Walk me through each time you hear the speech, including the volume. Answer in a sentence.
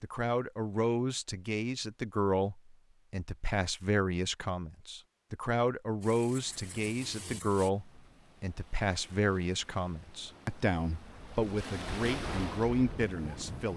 You can hear the speech from 0.0 to 13.7 s, at a steady volume.